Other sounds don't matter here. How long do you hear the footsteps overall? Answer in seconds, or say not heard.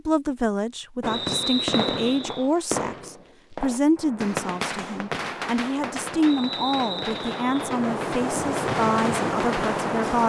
not heard.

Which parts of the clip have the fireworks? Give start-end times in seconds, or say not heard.
1.0-9.8.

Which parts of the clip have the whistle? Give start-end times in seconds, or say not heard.
1.1-2.5, 6.2-7.7.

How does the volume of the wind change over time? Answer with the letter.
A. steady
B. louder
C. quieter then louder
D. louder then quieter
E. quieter
B.